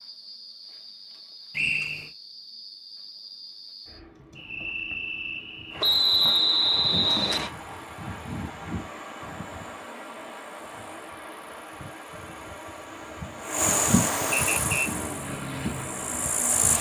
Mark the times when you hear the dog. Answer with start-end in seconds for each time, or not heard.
not heard.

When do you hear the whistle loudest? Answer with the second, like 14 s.
6 s.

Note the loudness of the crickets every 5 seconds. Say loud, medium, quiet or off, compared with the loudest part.
medium, medium, loud, loud.